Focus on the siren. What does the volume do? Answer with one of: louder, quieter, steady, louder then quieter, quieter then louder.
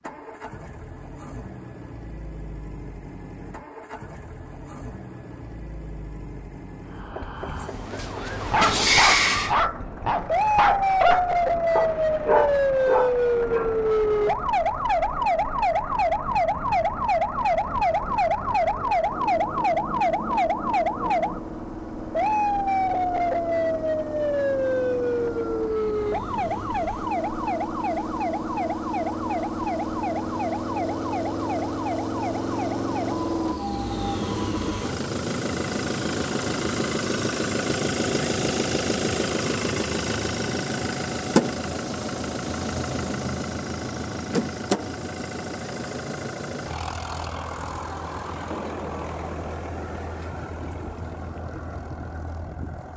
quieter.